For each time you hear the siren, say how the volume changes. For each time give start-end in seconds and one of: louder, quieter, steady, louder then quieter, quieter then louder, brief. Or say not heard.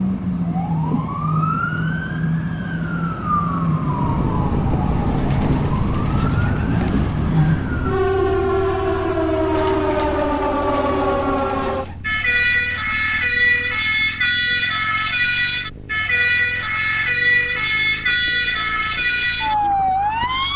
0.0-20.5 steady.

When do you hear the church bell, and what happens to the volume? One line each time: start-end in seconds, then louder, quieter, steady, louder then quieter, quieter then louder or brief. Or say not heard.
not heard.